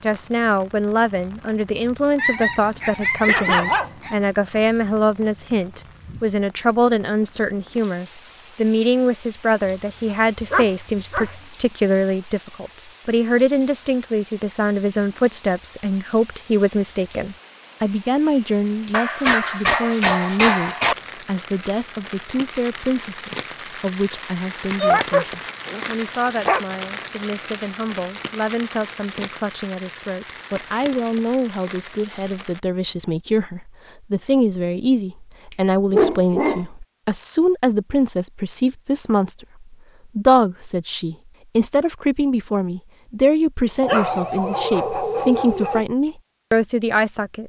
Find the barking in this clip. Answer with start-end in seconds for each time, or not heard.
2.1-4.2, 10.4-11.3, 18.9-20.9, 24.7-26.6, 35.5-36.6, 43.8-45.9.